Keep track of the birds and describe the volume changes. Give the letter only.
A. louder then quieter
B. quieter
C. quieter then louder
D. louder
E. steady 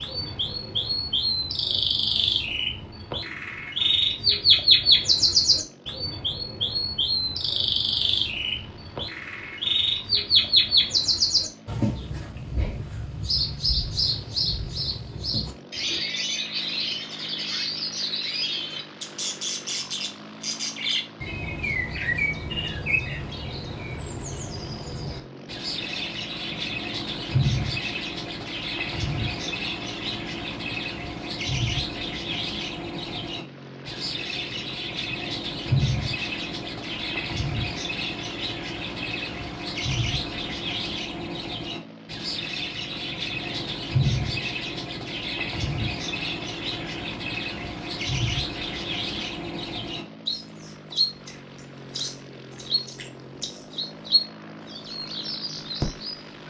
B.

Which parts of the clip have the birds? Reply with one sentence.
You can hear the birds from 0.0 to 56.4 s.